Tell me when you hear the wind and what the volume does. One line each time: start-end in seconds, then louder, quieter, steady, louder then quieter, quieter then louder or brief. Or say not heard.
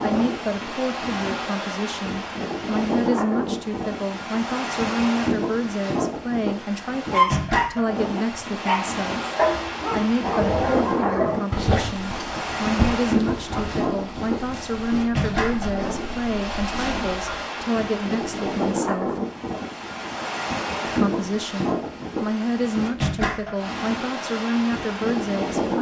0.0-25.7 steady.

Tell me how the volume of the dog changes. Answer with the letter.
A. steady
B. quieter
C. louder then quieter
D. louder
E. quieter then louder
B.